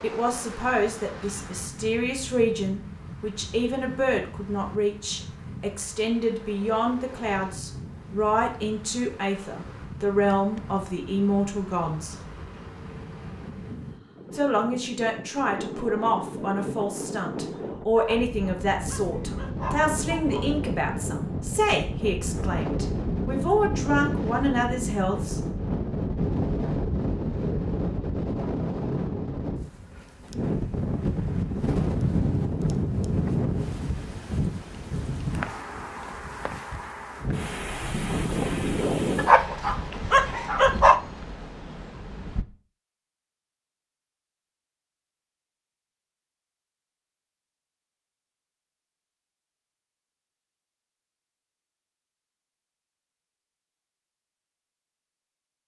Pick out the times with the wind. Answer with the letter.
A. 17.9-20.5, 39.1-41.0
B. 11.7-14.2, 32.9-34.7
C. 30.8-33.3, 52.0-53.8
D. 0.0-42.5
D.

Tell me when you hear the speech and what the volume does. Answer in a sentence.
The speech can be heard from 0.0 to 12.2 s, at a steady volume; and from 14.3 to 25.4 s, at a steady volume.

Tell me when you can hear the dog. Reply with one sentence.
The dog can be heard from 17.9 to 20.5 s and from 39.1 to 41.0 s.